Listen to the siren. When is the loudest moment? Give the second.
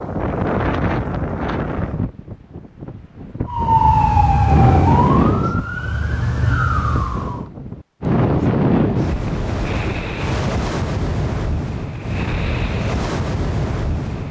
4 s.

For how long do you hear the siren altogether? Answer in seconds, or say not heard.
4 s.